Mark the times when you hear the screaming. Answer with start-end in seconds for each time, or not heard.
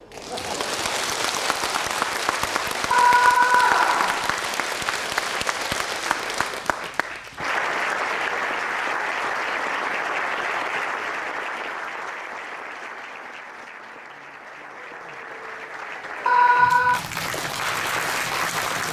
2.9-4.3, 16.2-17.0.